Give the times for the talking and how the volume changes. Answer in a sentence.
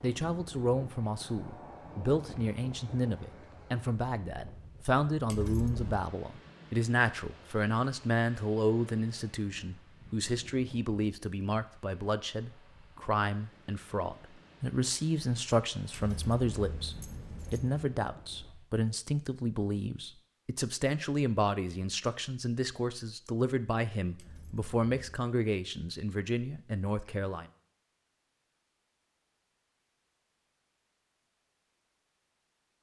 The talking can be heard from 0.0 to 27.4 s, at a steady volume.